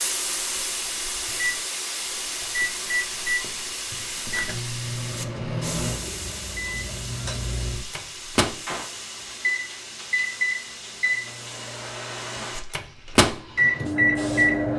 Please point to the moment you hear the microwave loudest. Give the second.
14 s.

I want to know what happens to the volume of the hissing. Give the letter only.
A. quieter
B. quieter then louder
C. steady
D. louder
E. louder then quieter
A.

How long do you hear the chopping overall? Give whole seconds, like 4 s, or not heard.
not heard.